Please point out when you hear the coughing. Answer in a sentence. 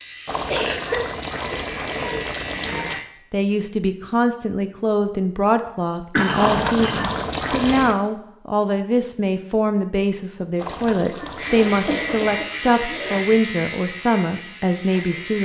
The coughing can be heard from 0.5 to 2.9 s, from 6.1 to 7.8 s and from 11.2 to 13.2 s.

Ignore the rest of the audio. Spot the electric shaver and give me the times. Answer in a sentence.
The electric shaver can be heard from 0.0 to 3.1 s and from 11.3 to 15.3 s.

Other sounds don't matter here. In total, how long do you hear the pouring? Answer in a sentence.
The pouring can be heard for 6 seconds in total.